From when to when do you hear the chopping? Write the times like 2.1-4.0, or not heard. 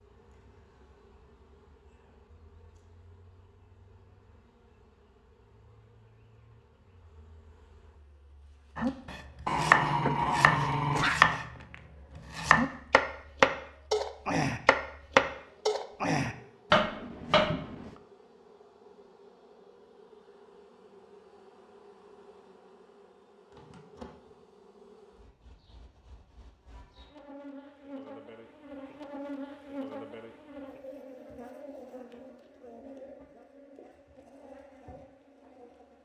8.8-11.4, 12.2-17.9.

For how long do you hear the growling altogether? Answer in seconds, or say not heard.
2 s.